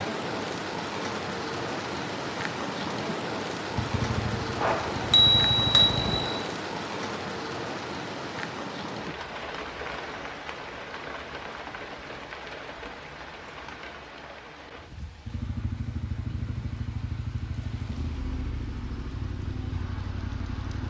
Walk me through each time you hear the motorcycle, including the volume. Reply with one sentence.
The motorcycle can be heard briefly from 3.7 to 6.2 s; and from 15.2 to 20.8 s, at a steady volume.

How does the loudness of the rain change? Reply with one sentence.
The volume of the rain goes down.